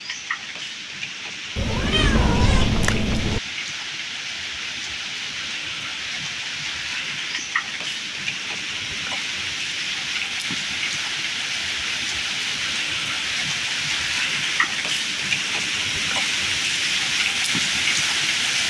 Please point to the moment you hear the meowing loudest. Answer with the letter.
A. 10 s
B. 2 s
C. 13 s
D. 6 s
B.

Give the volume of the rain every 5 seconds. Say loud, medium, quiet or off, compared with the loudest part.
medium, medium, loud, loud.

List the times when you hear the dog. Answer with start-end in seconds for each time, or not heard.
not heard.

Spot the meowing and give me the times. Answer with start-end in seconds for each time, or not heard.
1.6-3.4.